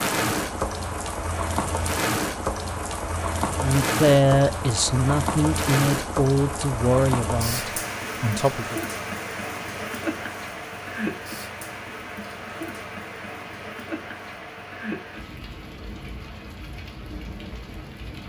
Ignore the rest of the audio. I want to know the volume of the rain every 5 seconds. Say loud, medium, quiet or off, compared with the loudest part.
loud, loud, medium, quiet.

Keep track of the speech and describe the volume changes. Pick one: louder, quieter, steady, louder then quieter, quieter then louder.
quieter.